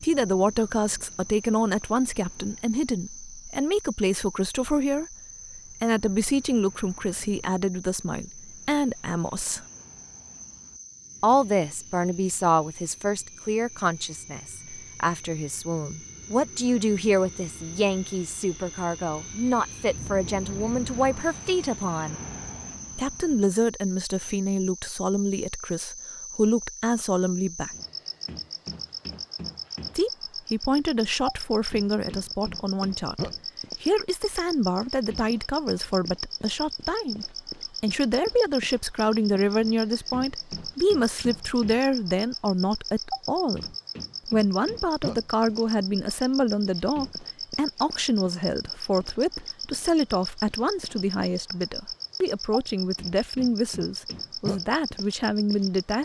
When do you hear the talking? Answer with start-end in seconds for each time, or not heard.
0.0-9.7, 11.2-22.2, 22.9-27.7, 29.9-56.0.